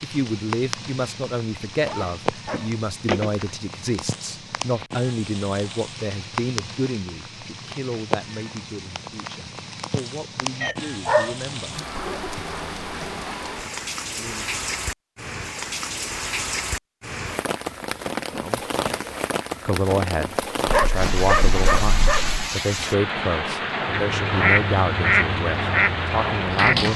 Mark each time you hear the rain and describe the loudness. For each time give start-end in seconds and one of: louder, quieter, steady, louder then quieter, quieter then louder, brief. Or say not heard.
0.0-26.9 louder.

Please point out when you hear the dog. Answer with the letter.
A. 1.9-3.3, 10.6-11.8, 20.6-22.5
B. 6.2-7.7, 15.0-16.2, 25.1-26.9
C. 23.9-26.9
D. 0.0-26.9
A.